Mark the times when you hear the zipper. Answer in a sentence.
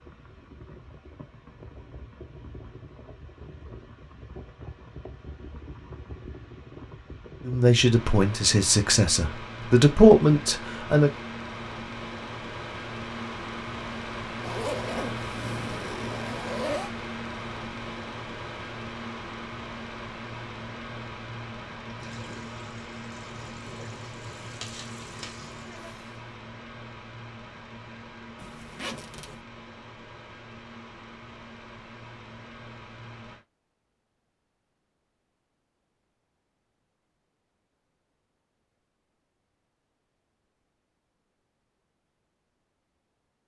The zipper can be heard from 14.4 to 16.9 s and from 28.4 to 29.4 s.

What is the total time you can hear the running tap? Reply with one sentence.
You can hear the running tap for 4 seconds altogether.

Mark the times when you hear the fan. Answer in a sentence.
You can hear the fan from 0.0 to 33.5 s.